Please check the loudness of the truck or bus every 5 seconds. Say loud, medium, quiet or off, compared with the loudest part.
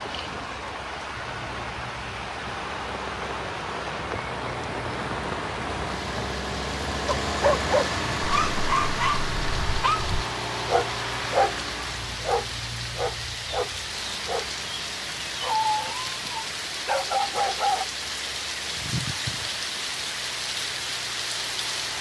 medium, loud, medium, quiet, quiet.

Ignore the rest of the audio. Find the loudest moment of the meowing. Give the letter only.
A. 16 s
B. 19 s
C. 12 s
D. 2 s
B.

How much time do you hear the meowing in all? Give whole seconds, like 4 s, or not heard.
2 s.